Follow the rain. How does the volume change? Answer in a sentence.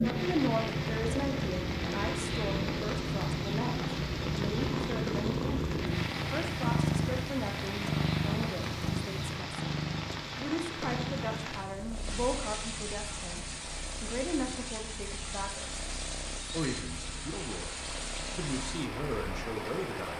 The volume of the rain stays about the same.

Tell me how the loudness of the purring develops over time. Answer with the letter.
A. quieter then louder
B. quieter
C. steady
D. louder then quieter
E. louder
B.